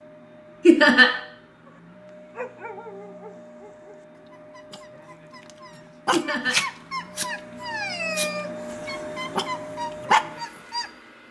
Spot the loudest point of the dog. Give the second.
10 s.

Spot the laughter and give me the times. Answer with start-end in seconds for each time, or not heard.
0.7-1.1, 6.1-6.6.